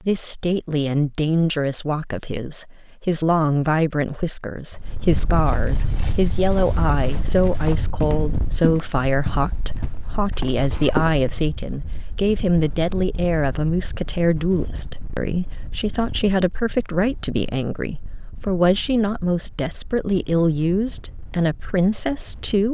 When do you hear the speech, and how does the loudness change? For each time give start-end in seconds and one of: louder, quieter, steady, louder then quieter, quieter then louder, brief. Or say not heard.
0.0-22.7 steady.